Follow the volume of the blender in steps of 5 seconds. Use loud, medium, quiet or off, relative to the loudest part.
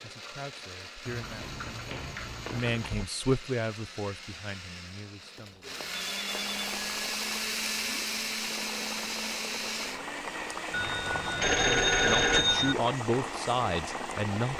medium, loud, medium.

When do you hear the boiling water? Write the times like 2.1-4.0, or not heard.
6.1-14.5.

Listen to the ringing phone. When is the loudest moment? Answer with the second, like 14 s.
12 s.